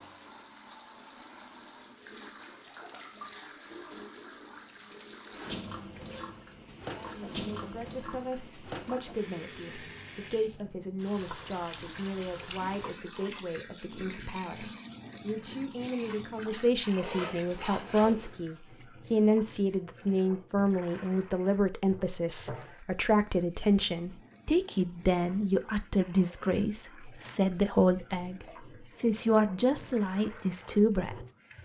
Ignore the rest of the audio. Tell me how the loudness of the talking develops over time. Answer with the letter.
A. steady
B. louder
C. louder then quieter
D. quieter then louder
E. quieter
B.